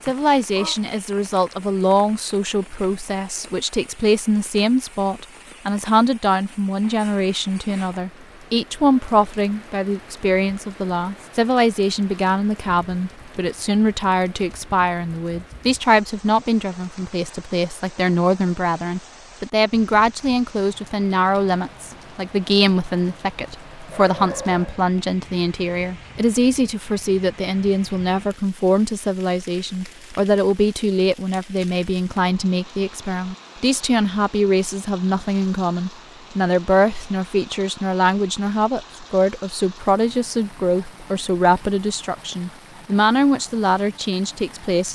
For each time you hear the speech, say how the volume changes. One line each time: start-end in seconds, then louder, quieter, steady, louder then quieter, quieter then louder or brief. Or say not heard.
0.0-44.9 steady.